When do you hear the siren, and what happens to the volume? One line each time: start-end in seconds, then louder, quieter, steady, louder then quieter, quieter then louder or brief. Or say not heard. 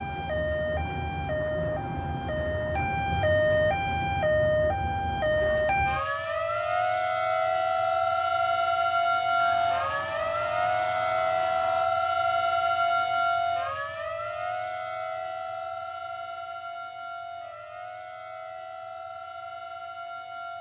0.0-20.5 quieter.